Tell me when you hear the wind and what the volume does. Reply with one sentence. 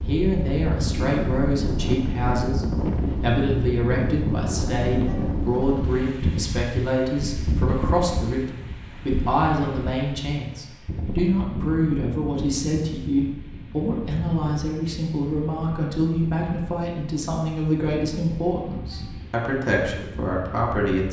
The wind can be heard from 0.0 to 21.0 s, getting quieter.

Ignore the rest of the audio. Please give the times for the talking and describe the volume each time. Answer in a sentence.
The talking can be heard from 0.1 to 21.0 s, at a steady volume.